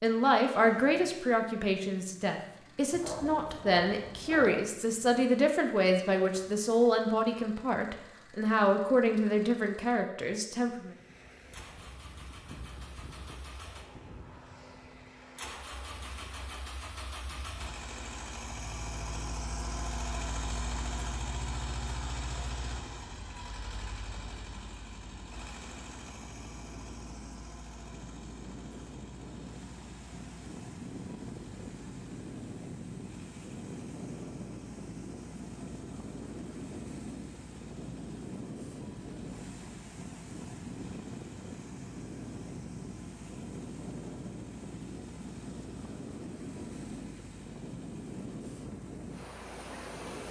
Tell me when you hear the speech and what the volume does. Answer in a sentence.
You can hear the speech from 0.0 to 10.9 s, at a steady volume.